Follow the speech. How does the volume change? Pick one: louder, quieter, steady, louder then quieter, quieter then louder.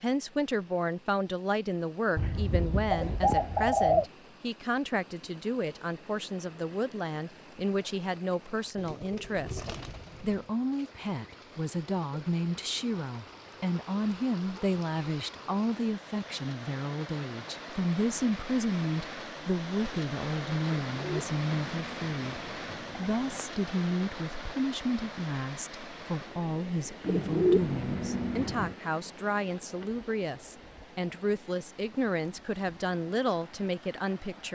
steady.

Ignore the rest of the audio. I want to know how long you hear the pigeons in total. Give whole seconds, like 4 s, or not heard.
8 s.